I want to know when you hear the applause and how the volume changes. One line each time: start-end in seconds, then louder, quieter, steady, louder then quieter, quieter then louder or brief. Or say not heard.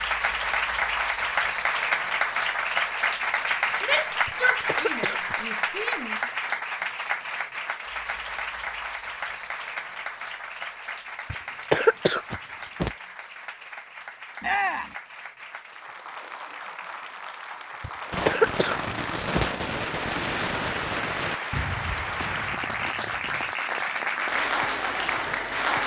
0.0-25.8 quieter then louder.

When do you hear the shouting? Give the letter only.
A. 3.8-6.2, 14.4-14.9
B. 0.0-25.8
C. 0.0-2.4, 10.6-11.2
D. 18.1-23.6
A.